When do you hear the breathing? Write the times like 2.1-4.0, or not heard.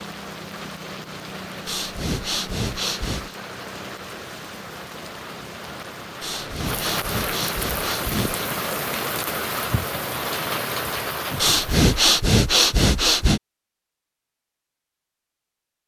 1.6-3.4, 6.2-8.4, 11.3-13.4.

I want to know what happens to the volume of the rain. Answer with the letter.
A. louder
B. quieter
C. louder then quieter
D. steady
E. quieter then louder
A.